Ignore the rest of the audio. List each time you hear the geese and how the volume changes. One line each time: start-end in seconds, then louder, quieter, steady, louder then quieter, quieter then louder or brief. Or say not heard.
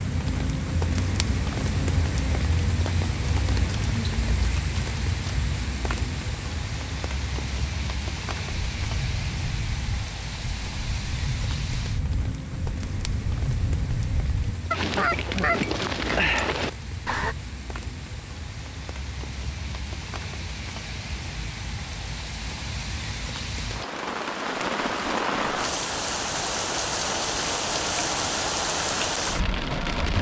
8.4-17.4 louder.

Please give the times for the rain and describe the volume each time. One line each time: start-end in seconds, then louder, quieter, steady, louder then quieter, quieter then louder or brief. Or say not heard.
0.0-30.1 quieter then louder.